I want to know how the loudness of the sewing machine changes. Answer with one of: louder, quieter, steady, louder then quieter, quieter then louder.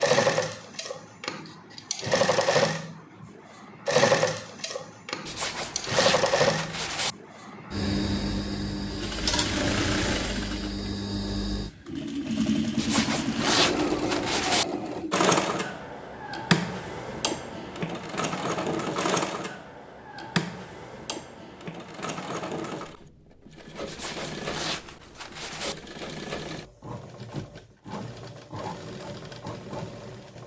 quieter.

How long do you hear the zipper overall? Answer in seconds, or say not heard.
6 s.